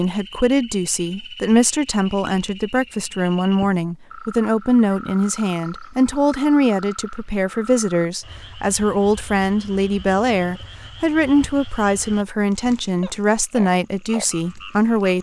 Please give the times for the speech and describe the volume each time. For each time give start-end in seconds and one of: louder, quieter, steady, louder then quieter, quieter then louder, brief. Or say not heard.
0.0-15.1 steady.